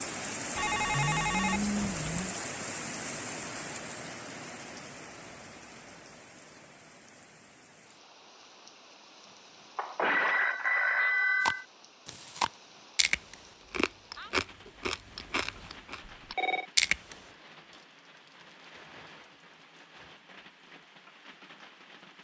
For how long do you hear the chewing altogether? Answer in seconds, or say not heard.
6 s.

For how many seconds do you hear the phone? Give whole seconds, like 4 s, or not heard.
4 s.